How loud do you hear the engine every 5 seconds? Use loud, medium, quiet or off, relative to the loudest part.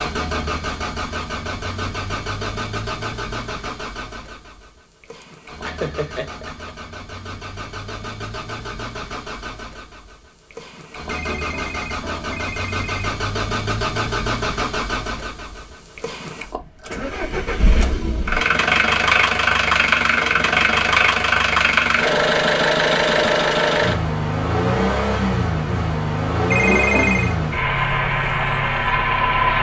medium, quiet, medium, loud, loud, loud.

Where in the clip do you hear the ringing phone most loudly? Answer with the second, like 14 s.
27 s.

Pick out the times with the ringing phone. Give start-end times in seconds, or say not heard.
11.1-13.1, 26.5-27.4.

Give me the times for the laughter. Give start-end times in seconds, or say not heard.
5.2-6.7.